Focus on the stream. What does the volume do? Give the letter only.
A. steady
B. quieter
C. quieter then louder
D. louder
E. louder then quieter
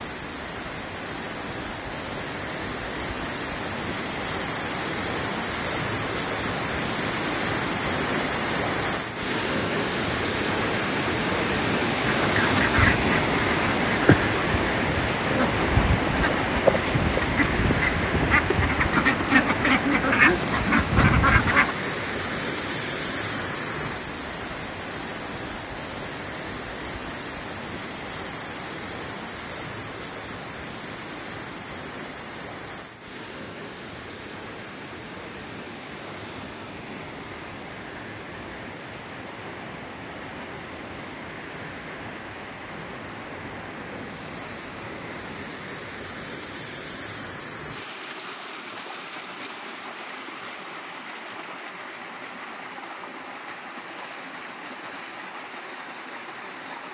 B.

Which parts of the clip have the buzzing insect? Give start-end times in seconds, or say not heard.
not heard.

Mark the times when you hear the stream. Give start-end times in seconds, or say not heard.
0.0-56.8.